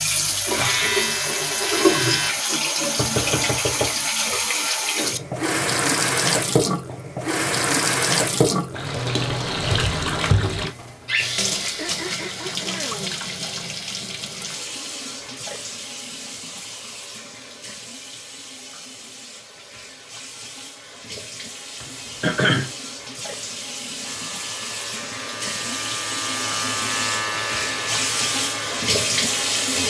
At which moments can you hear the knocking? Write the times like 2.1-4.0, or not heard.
3.0-4.4.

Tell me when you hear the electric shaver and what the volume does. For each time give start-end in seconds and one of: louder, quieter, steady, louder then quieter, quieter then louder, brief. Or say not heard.
0.0-2.4 brief
24.1-29.8 louder then quieter.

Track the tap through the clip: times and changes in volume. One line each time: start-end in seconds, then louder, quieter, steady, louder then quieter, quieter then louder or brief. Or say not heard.
0.0-29.8 quieter then louder.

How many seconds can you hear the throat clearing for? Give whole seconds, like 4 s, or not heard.
4 s.